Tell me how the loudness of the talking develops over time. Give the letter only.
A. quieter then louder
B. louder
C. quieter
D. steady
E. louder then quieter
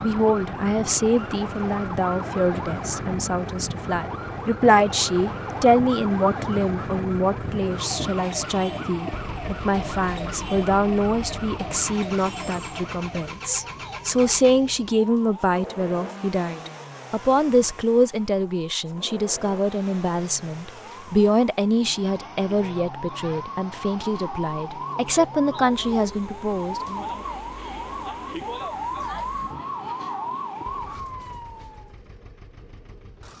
D.